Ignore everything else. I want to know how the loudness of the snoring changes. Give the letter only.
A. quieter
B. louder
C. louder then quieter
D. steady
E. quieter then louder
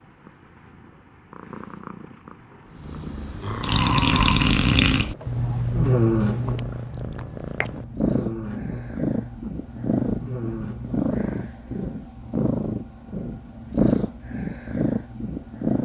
A.